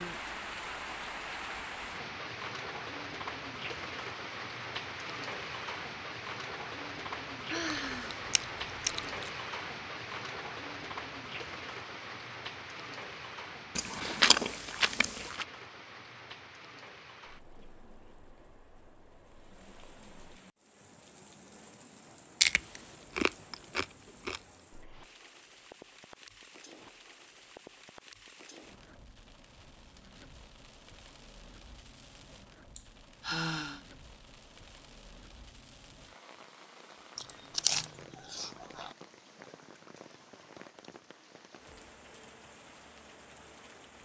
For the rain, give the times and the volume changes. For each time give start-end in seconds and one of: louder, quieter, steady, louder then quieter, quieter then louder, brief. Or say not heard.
0.0-43.9 quieter.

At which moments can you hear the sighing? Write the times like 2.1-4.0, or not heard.
7.5-8.2, 32.8-33.9.